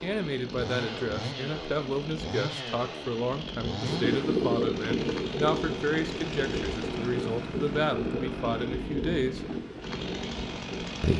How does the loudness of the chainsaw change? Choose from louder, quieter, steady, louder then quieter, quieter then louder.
steady.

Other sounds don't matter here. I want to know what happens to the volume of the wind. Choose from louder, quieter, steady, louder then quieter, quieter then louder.
quieter.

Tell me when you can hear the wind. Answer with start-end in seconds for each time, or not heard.
3.8-10.9.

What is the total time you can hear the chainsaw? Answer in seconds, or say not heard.
11 s.